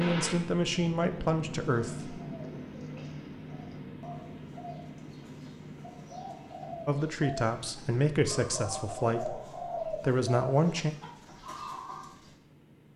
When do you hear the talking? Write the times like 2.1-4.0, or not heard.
0.0-2.1, 6.8-10.9.